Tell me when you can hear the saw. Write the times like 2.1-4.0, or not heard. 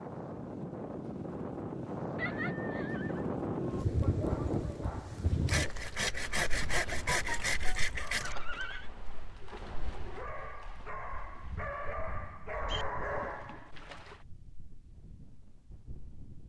5.5-8.3.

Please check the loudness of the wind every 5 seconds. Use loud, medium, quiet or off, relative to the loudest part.
loud, medium, quiet, quiet.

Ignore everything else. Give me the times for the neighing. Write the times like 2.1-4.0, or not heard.
2.1-3.2, 8.2-8.9, 12.7-13.3.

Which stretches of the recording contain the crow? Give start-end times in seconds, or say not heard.
not heard.